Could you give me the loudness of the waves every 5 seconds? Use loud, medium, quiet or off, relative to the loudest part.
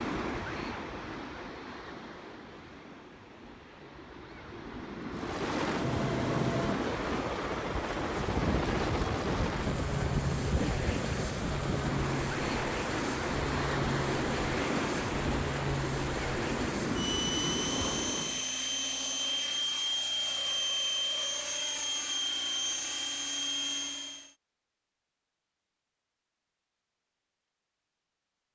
medium, loud, loud, loud, off, off.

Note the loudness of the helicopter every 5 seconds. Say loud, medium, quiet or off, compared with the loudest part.
off, loud, loud, loud, loud, off.